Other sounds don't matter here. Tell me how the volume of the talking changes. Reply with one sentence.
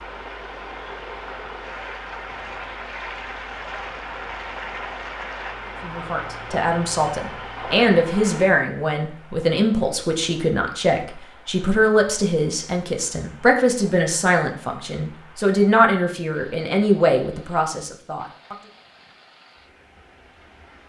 The volume of the talking stays about the same.